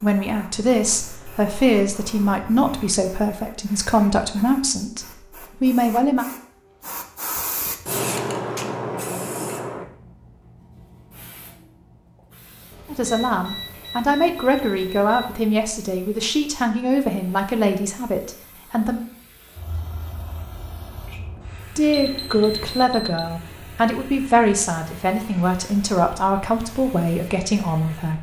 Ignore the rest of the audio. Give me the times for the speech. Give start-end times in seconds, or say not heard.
0.0-6.2, 12.9-19.0, 21.8-28.1.